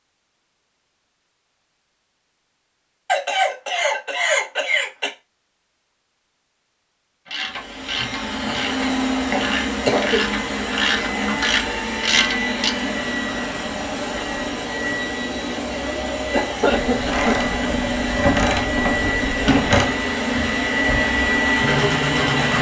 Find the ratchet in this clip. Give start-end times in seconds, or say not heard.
7.2-12.7, 16.8-19.9.